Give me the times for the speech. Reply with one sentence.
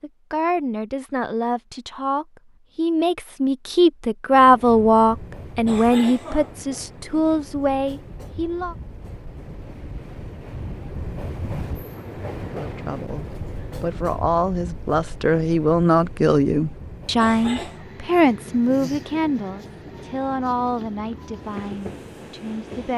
The speech can be heard from 0.0 to 8.8 s and from 12.5 to 22.9 s.